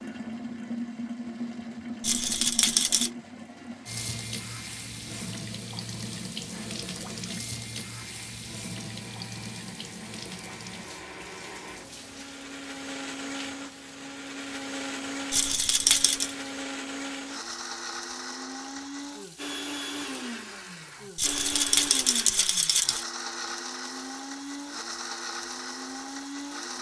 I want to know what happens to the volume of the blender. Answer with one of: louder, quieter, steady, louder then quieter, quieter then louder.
louder.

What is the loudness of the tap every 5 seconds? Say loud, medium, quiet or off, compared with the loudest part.
loud, loud, medium, quiet, quiet, quiet.